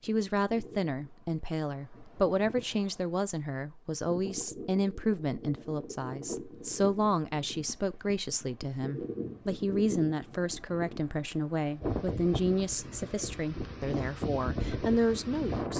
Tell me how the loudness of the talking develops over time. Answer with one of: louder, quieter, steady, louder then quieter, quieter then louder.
steady.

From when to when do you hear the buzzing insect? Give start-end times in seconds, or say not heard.
not heard.